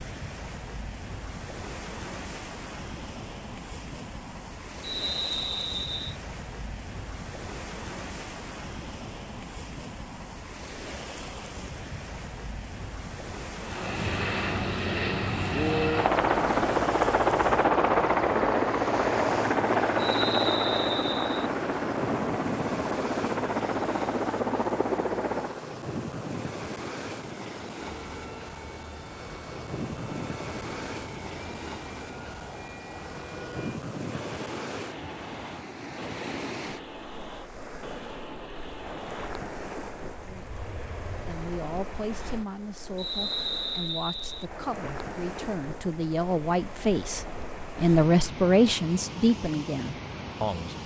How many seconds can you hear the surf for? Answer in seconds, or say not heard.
51 s.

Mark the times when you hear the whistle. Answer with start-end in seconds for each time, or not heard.
4.8-6.2, 19.9-21.5, 43.0-44.5.